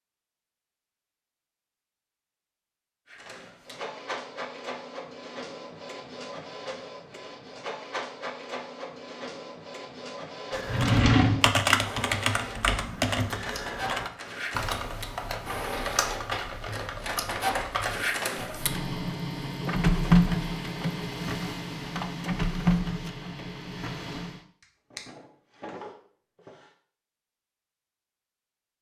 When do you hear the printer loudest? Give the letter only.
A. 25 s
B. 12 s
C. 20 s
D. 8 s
C.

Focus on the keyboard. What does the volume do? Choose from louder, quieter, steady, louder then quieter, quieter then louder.
quieter.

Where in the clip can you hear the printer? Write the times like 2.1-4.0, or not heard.
3.0-24.4.